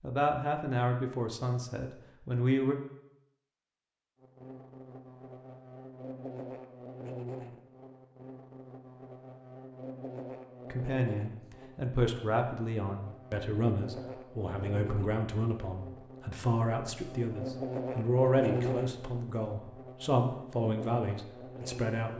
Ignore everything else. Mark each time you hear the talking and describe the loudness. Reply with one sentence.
The talking can be heard briefly from 0.0 to 2.8 s; and from 10.7 to 22.1 s, at a steady volume.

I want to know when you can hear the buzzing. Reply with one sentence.
You can hear the buzzing from 4.2 to 22.1 s.